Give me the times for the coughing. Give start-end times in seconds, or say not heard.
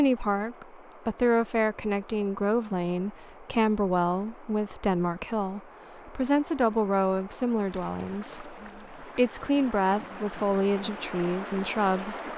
not heard.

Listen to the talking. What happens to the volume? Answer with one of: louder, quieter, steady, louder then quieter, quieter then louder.
steady.